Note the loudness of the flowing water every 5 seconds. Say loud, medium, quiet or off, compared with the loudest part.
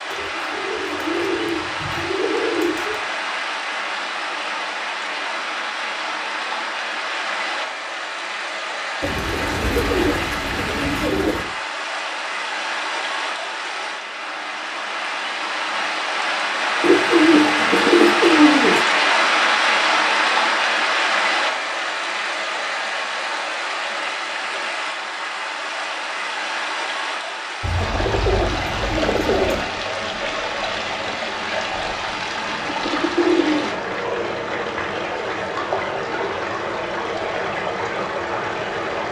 medium, medium, medium, loud, loud, medium, medium, medium.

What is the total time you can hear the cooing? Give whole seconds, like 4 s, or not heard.
11 s.